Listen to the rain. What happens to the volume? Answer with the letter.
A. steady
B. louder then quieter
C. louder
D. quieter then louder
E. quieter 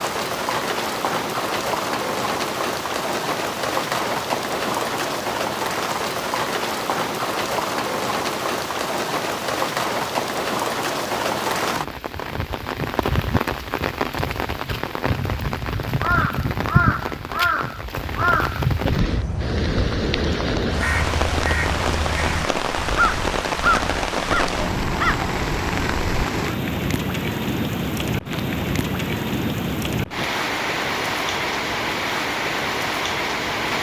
A.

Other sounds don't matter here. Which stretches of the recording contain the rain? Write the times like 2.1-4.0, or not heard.
0.0-33.7.